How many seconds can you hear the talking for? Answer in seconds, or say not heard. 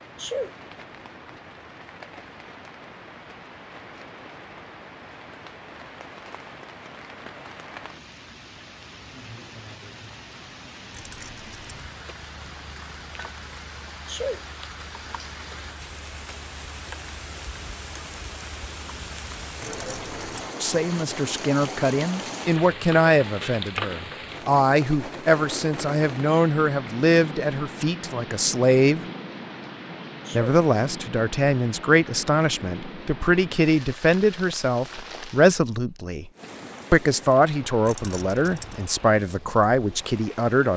18 s.